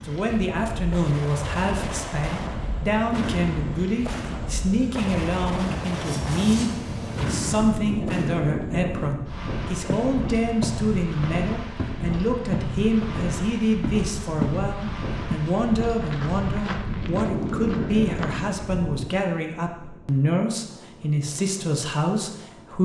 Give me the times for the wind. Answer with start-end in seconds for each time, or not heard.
0.0-22.8.